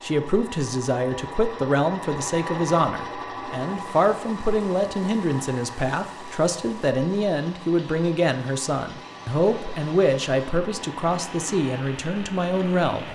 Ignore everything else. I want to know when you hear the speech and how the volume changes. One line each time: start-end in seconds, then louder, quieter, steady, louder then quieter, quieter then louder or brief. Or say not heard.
0.0-13.0 steady.